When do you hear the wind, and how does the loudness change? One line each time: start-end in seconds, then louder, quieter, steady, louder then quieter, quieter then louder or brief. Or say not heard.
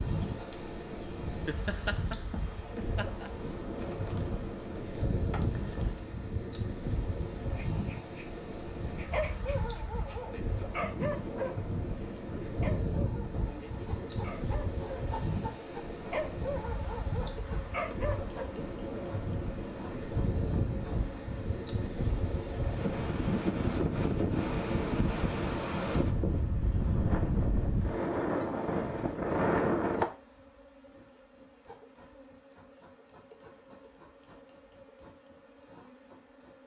0.0-30.1 louder.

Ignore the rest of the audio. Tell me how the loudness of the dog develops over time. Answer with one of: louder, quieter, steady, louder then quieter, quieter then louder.
quieter then louder.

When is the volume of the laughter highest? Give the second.
2 s.